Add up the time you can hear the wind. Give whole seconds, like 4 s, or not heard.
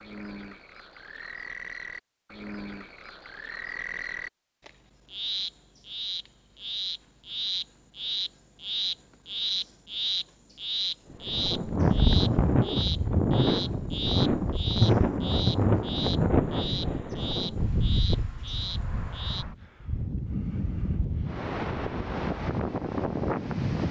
13 s.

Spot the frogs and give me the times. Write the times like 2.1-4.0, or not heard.
0.0-19.4.